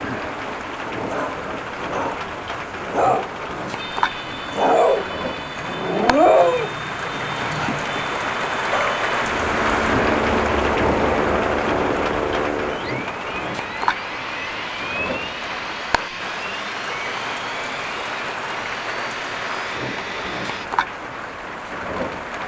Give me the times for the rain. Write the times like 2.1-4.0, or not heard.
0.0-22.4.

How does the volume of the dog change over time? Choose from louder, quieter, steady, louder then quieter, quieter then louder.
louder then quieter.